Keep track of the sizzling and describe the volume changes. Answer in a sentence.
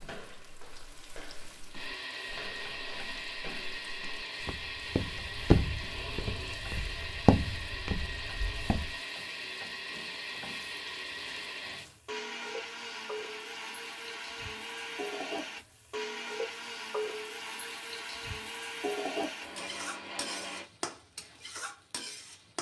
The volume of the sizzling goes up.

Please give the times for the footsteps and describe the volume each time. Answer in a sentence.
The footsteps can be heard from 0.0 to 8.9 s, getting louder.